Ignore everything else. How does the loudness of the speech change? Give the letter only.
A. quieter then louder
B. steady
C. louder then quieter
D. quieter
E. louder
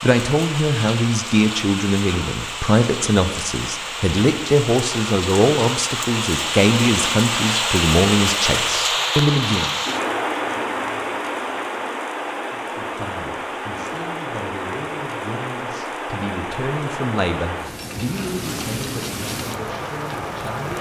D.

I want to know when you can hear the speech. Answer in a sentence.
The speech can be heard from 0.0 to 9.8 s and from 12.5 to 20.7 s.